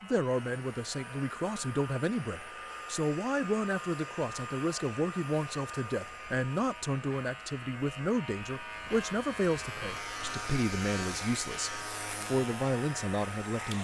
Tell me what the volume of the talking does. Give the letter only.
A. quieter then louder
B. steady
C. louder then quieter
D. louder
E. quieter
B.